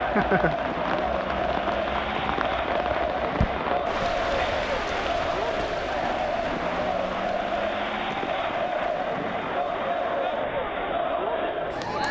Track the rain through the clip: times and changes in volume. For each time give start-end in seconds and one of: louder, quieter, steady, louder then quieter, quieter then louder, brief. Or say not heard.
0.0-12.0 quieter.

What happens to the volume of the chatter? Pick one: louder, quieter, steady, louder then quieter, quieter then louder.
steady.